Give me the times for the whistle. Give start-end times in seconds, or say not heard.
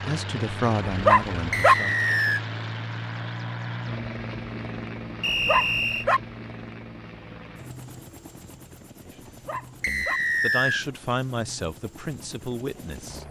1.5-2.4, 5.2-6.0, 9.8-10.8.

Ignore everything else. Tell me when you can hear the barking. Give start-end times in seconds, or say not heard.
0.8-1.8, 5.2-6.2, 9.2-10.2.